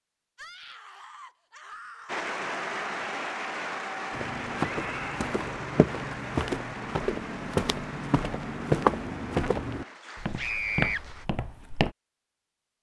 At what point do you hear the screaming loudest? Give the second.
11 s.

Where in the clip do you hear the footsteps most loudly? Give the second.
9 s.